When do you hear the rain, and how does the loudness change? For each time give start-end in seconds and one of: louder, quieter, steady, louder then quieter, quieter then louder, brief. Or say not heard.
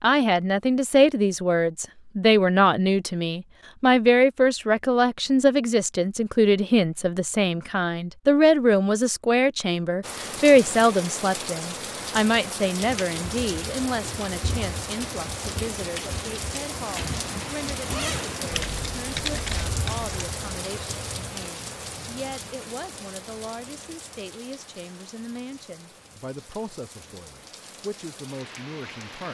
10.0-29.2 quieter.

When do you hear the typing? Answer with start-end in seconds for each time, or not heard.
18.5-20.1.